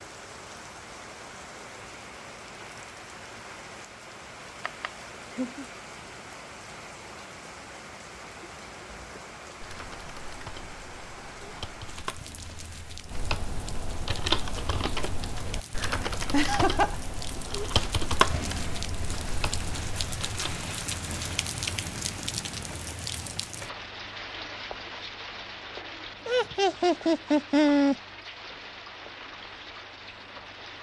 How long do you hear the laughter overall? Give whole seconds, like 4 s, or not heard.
3 s.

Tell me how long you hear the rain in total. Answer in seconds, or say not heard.
31 s.